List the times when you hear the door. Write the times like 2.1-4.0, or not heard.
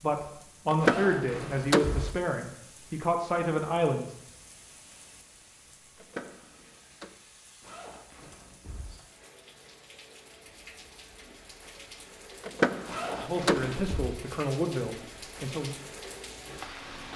0.7-2.1, 6.0-7.1, 12.4-13.8.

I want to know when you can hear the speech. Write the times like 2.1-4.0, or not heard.
0.0-4.2, 13.2-15.8.